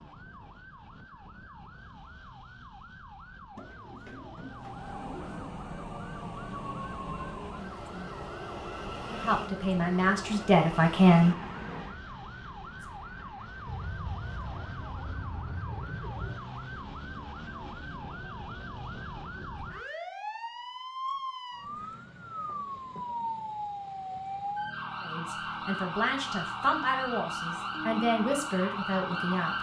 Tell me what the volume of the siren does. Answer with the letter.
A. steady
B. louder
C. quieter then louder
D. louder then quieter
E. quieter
B.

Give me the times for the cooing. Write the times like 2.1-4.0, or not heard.
3.5-5.4, 13.7-16.4, 21.6-23.6.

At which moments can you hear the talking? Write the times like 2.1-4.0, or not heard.
9.1-11.3, 25.0-29.5.